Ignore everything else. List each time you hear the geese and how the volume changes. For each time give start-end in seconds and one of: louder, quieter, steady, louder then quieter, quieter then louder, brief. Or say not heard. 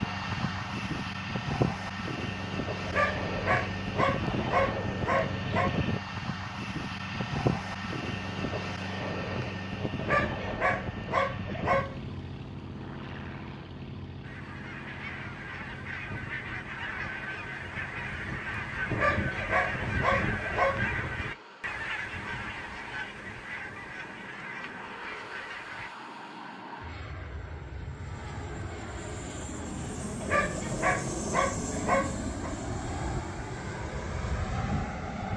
14.2-25.9 louder then quieter.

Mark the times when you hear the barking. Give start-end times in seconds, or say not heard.
2.9-5.7, 10.0-12.1, 18.9-20.9, 30.2-32.5.